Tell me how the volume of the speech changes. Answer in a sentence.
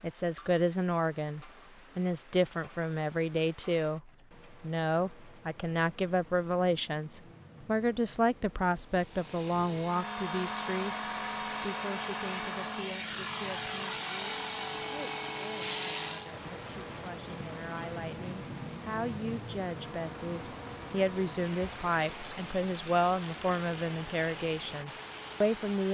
The loudness of the speech goes down, then up.